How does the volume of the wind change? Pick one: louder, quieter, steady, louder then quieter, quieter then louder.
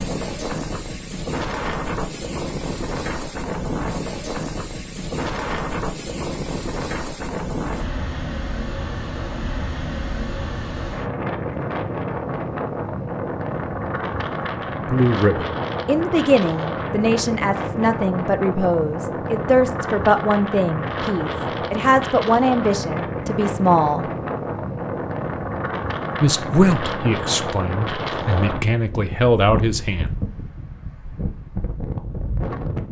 steady.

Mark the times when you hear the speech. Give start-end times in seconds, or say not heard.
14.7-24.1, 26.2-30.1.